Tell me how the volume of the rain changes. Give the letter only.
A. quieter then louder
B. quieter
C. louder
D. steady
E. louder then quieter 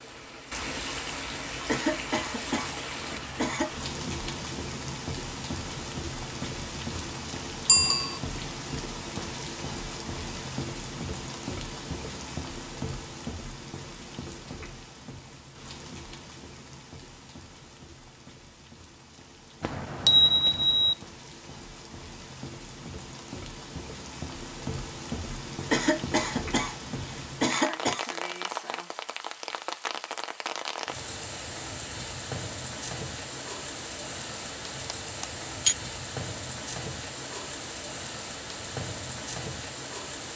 A.